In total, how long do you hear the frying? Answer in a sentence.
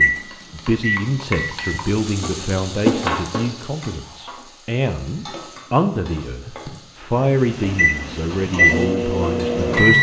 You can hear the frying for 10 seconds altogether.